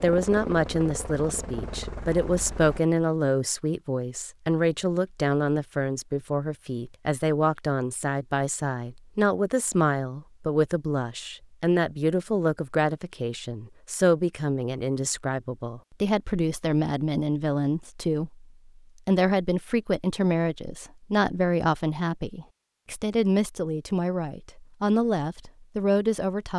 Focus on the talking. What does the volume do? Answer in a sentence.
The loudness of the talking stays about the same.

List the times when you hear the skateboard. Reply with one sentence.
The skateboard can't be heard in this clip.